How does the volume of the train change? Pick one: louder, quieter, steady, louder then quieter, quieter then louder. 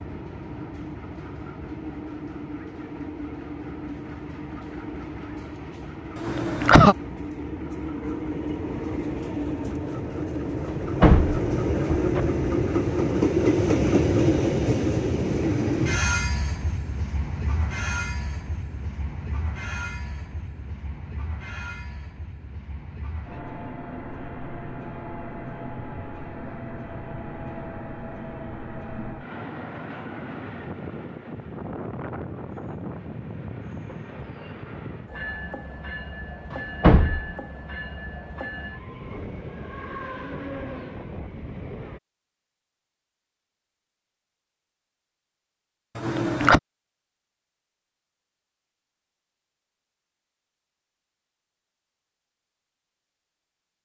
louder then quieter.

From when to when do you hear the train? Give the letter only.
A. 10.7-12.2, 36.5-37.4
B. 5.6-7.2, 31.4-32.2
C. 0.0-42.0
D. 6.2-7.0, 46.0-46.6
C.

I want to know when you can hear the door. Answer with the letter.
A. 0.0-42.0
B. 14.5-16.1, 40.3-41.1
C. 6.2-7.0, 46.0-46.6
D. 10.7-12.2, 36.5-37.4
D.